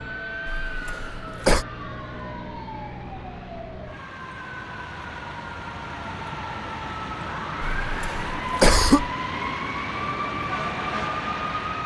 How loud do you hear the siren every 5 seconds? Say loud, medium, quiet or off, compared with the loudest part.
medium, loud, loud.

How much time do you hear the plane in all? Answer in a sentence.
You can hear the plane for 12 seconds altogether.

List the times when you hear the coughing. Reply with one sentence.
The coughing can be heard from 0.5 to 1.6 s and from 7.8 to 9.1 s.